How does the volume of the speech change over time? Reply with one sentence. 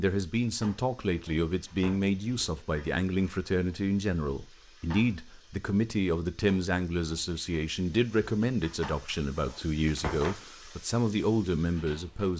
The volume of the speech stays about the same.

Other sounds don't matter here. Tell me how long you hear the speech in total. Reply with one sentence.
You can hear the speech for 12 seconds altogether.